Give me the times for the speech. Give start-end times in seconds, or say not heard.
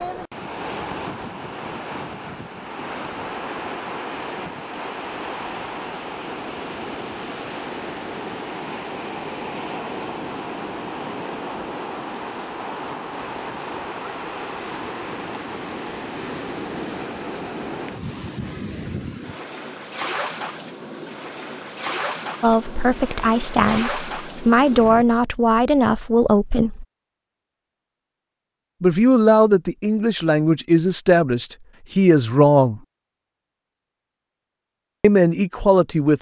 22.4-26.9, 28.8-32.8, 35.0-36.1.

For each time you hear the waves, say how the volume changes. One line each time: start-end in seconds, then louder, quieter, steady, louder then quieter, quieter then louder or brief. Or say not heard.
0.0-25.1 steady.